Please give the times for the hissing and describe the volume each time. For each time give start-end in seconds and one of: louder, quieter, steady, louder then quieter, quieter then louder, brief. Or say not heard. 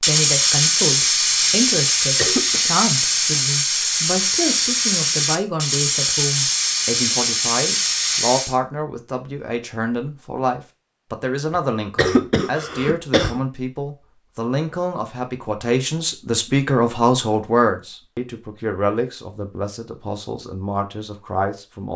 0.0-8.6 steady.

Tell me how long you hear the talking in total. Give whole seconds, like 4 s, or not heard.
22 s.